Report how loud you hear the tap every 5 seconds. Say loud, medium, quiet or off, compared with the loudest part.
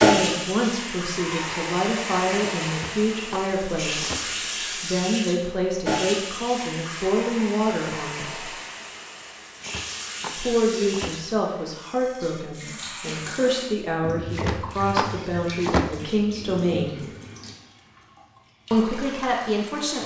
loud, medium, medium, quiet.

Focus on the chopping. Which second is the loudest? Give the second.
16 s.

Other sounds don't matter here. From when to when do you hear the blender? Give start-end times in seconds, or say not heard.
not heard.